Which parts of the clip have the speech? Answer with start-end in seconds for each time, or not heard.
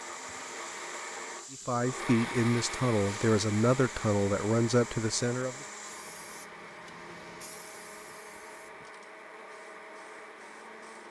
1.5-5.7.